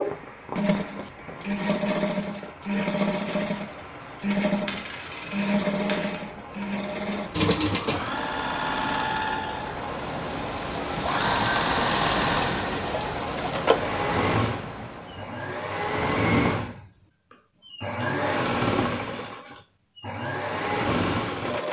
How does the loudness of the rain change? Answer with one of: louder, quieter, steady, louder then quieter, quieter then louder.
louder.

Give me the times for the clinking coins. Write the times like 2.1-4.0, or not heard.
3.9-6.2.